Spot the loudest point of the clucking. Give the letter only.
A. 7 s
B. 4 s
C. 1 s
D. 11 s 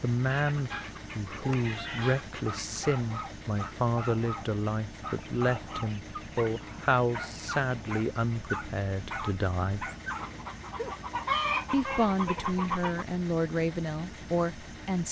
D.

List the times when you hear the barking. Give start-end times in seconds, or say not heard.
0.7-10.9.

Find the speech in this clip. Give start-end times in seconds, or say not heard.
0.0-9.9, 11.7-15.0.